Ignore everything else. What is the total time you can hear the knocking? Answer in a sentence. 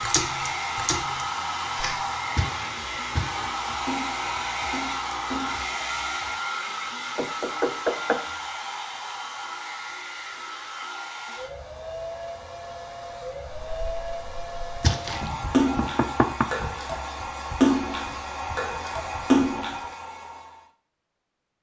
The knocking can be heard for 2 seconds in total.